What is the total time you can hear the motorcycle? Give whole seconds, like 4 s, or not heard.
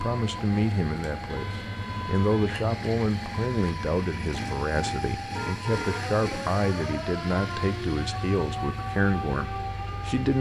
10 s.